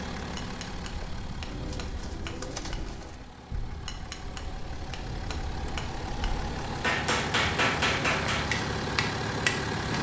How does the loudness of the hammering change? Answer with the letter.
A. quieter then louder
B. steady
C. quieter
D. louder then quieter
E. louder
E.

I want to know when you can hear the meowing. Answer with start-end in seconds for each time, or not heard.
not heard.